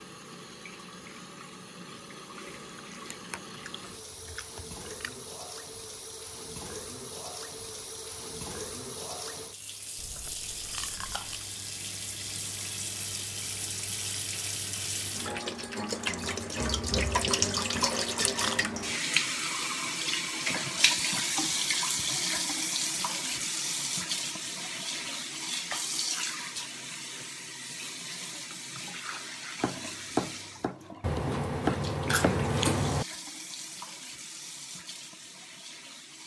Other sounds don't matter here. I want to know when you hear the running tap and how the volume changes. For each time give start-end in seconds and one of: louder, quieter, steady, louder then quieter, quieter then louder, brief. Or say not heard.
0.0-36.2 louder then quieter.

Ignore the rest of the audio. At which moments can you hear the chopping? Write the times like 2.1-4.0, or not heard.
29.6-32.5.